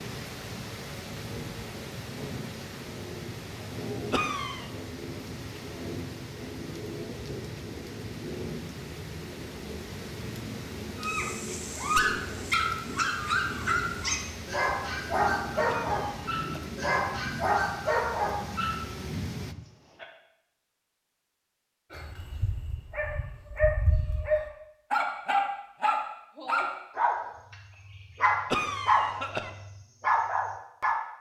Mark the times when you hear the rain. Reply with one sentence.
You can hear the rain from 0.0 to 19.6 s.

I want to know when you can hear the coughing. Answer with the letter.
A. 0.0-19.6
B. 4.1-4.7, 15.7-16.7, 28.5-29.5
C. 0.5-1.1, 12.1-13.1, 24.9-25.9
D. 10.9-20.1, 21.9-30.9
B.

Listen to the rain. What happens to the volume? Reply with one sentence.
The volume of the rain stays about the same.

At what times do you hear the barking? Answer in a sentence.
The barking can be heard from 10.9 to 20.1 s and from 21.9 to 30.9 s.